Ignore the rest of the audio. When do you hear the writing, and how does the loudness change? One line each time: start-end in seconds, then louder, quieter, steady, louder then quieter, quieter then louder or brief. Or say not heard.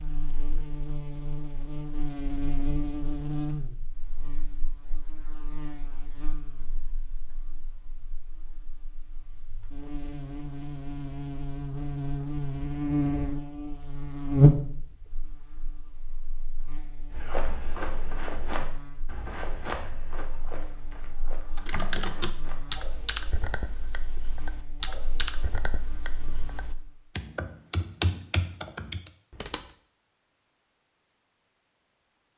not heard.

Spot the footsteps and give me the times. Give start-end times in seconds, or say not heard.
17.1-22.6.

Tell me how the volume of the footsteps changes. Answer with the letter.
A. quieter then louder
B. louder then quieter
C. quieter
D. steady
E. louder
C.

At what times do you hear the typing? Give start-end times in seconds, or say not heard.
21.6-29.7.